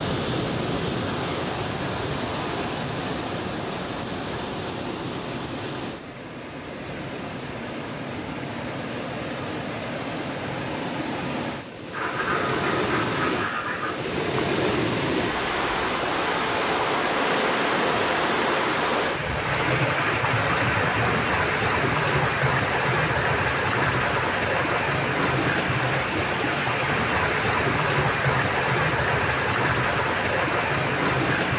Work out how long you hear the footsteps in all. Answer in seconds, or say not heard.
not heard.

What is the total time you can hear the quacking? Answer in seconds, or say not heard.
2 s.